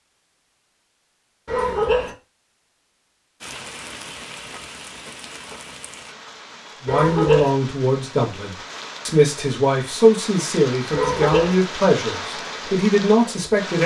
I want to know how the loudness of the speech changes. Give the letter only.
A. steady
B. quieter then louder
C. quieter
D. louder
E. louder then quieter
A.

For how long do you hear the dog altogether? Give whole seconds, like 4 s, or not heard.
2 s.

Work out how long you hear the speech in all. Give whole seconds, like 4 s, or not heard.
7 s.